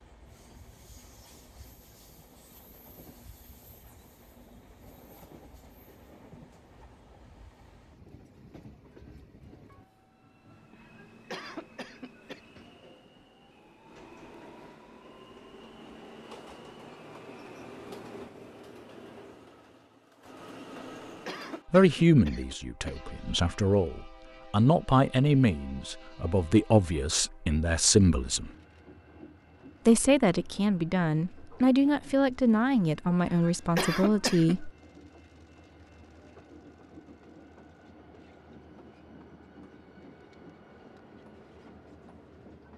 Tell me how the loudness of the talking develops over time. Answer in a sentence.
The loudness of the talking stays about the same.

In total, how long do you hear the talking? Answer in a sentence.
You can hear the talking for 12 seconds altogether.